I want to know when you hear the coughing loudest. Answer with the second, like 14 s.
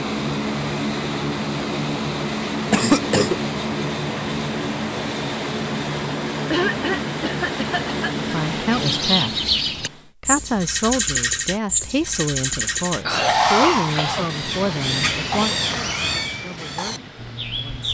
3 s.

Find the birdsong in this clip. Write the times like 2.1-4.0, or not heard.
8.7-17.8.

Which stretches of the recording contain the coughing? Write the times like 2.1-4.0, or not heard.
2.7-3.4, 6.5-8.0, 13.1-14.4.